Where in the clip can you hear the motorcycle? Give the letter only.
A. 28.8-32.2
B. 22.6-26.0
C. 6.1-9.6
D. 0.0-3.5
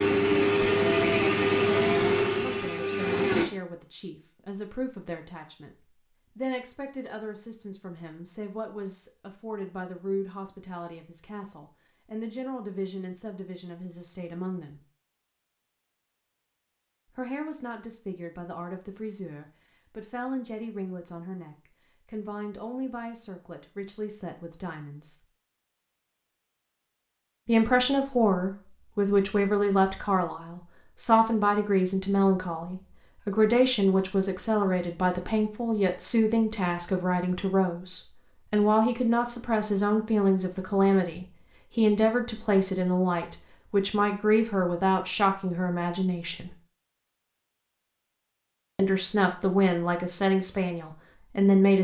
D.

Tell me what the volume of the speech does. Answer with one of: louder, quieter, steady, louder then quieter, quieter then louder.
louder.